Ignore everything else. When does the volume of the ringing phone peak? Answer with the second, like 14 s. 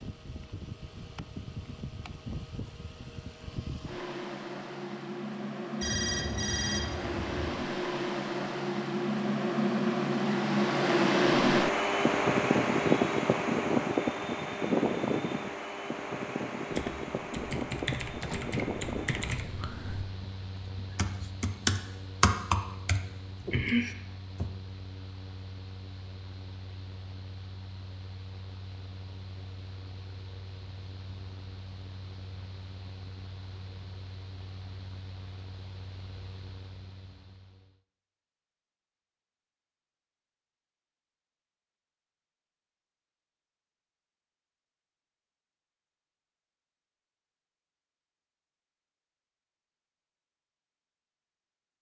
6 s.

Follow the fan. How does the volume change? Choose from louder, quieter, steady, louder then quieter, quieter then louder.
louder then quieter.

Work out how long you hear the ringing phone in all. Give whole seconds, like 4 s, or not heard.
2 s.